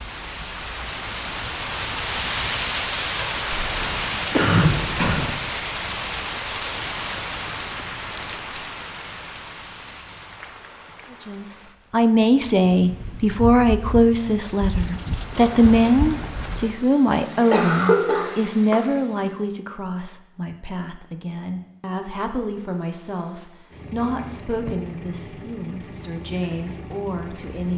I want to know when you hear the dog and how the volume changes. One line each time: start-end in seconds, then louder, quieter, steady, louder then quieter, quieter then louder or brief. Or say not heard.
not heard.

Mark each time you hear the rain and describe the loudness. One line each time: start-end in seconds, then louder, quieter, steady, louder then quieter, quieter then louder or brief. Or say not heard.
0.0-16.9 quieter then louder.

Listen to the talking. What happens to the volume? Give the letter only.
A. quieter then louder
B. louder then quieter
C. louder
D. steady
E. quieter
E.